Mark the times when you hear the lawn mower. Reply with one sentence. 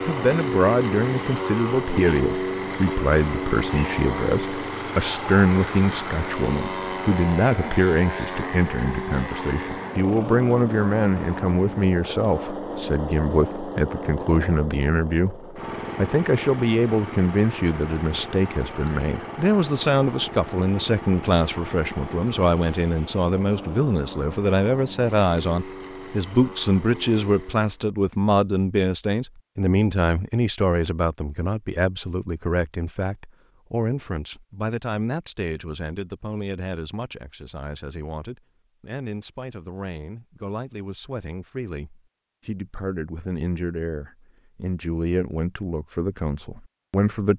The lawn mower can be heard from 0.0 to 27.8 s.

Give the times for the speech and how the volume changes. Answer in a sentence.
You can hear the speech from 0.0 to 47.3 s, getting quieter.